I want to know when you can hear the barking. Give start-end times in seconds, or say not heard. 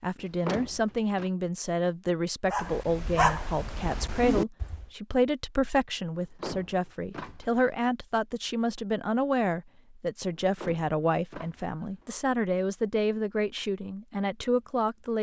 2.5-4.8.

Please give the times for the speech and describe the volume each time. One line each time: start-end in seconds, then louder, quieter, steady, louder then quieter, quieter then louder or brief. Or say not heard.
0.0-15.1 steady.